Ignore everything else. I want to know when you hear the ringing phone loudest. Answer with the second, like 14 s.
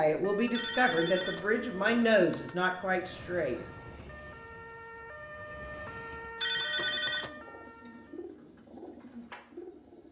7 s.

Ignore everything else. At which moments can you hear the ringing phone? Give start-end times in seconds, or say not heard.
0.5-2.5, 6.3-7.3.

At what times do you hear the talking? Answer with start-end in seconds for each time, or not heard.
0.0-3.6.